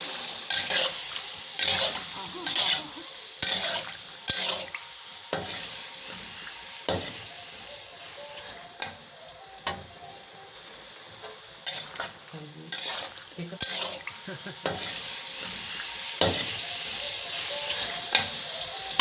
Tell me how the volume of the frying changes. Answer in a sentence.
The volume of the frying goes down, then up.